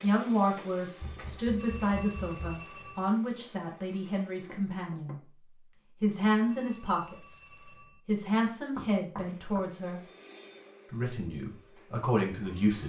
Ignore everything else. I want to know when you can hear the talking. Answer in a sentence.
You can hear the talking from 0.0 to 5.2 s, from 6.0 to 7.4 s, from 8.1 to 10.0 s and from 10.9 to 12.8 s.